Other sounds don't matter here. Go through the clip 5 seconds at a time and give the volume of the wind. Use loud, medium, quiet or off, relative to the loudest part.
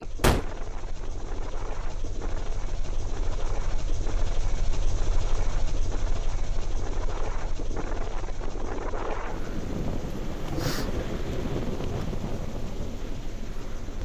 medium, loud, loud.